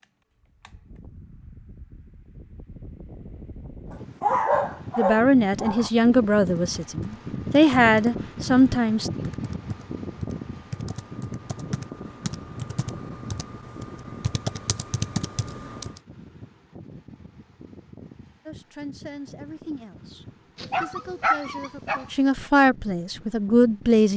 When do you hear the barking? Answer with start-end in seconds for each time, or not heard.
3.9-5.9, 20.6-22.1.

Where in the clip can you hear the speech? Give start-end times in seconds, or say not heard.
5.0-9.1, 18.4-24.1.